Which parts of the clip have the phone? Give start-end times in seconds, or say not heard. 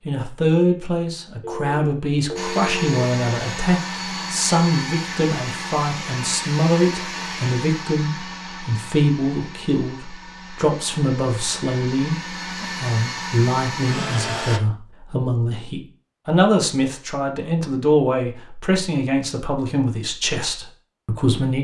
1.4-3.0.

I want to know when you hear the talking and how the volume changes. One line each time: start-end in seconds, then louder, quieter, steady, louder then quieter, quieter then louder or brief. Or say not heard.
0.1-21.5 steady.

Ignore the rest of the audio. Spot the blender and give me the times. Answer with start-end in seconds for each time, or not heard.
2.4-14.6.